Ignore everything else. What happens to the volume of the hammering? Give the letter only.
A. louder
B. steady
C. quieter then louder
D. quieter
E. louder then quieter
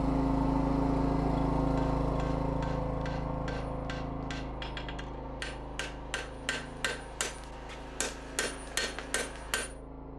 A.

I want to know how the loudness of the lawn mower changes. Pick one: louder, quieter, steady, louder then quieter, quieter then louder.
quieter.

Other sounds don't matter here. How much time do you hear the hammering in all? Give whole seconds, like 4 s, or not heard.
8 s.